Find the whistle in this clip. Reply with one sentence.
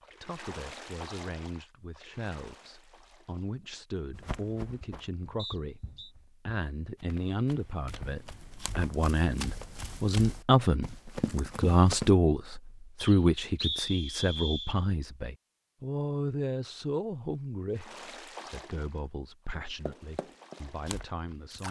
The whistle can be heard from 5.3 to 6.1 s and from 12.9 to 14.8 s.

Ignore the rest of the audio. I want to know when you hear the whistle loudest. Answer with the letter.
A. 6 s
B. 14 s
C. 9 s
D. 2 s
B.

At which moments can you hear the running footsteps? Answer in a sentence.
You can hear the running footsteps from 4.1 to 12.1 s and from 19.5 to 21.6 s.